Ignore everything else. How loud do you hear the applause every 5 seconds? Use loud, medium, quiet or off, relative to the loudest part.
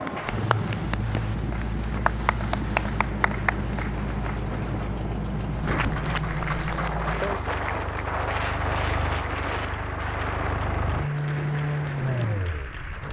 loud, loud, medium.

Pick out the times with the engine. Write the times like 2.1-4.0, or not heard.
0.0-13.0.